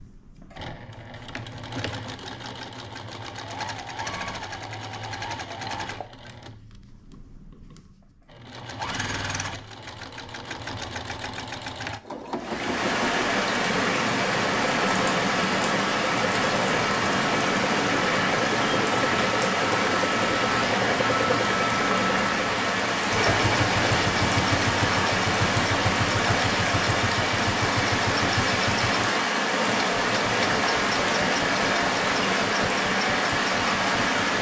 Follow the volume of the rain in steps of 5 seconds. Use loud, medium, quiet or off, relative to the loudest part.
off, off, loud, loud, loud, loud, loud.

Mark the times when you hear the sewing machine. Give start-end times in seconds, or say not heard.
0.0-34.3.